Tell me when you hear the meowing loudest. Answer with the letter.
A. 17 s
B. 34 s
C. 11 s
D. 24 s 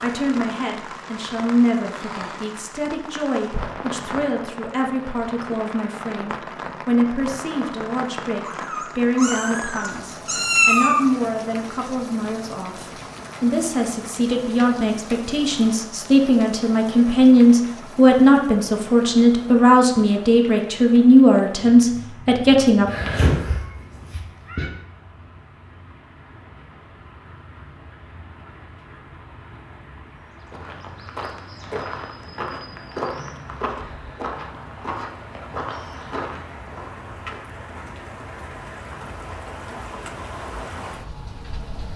C.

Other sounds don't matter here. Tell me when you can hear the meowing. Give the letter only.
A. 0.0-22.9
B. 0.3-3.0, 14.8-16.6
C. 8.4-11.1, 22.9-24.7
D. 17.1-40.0
C.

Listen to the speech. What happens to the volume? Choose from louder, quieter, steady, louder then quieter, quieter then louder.
louder.